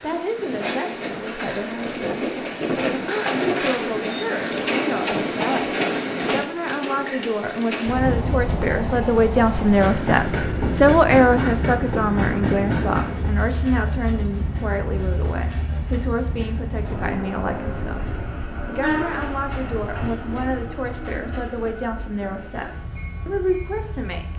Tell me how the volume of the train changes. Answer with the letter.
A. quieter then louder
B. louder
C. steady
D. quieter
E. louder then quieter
D.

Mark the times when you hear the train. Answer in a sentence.
The train can be heard from 0.0 to 24.3 s.